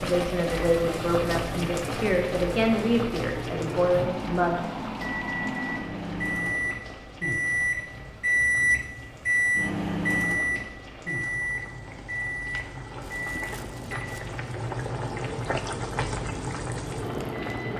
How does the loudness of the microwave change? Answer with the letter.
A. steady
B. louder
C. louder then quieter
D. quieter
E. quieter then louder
C.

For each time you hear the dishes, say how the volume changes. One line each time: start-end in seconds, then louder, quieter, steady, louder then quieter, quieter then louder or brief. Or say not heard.
not heard.